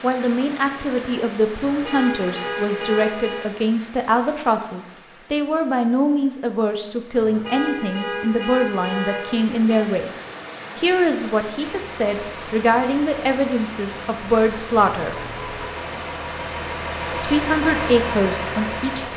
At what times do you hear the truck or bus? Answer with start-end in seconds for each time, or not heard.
11.6-19.1.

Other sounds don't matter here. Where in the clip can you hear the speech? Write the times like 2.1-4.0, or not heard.
0.0-10.1, 10.8-15.2, 17.1-19.1.